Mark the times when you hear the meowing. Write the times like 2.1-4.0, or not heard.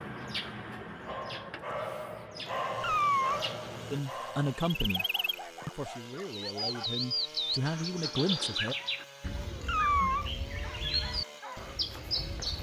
2.8-3.4, 9.7-10.2.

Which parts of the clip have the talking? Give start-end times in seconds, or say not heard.
3.9-5.0, 5.8-8.8.